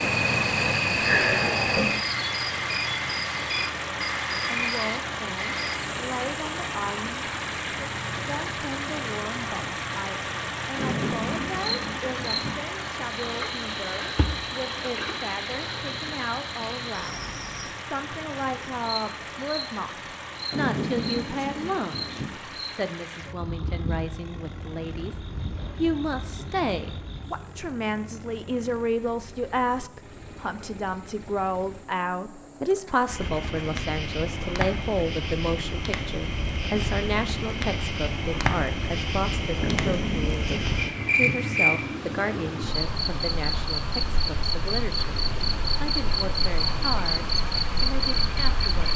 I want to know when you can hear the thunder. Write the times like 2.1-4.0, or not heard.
10.8-12.6, 20.5-22.4, 39.6-41.5.